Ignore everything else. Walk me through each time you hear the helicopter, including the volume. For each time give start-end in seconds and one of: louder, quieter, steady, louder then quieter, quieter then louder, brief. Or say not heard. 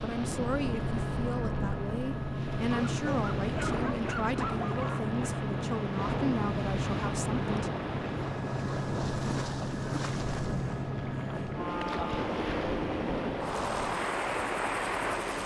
0.0-15.4 steady.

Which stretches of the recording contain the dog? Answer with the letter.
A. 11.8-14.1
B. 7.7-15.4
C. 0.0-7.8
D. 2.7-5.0
D.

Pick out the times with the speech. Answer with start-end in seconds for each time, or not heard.
0.0-7.8.